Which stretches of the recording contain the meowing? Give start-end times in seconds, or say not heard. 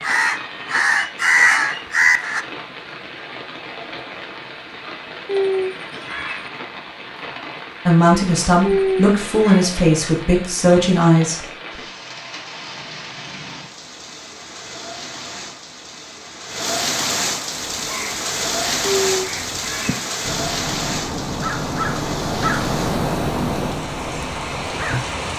5.2-6.5, 8.6-9.7, 18.8-20.1.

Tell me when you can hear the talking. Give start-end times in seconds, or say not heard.
7.8-11.8.